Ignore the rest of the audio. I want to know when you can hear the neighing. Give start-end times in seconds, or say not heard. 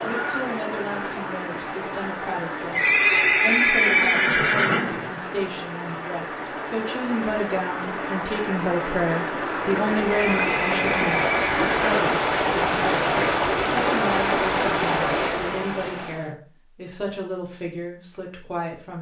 2.7-5.2, 10.2-12.2.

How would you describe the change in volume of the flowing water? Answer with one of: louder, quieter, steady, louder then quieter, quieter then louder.
louder.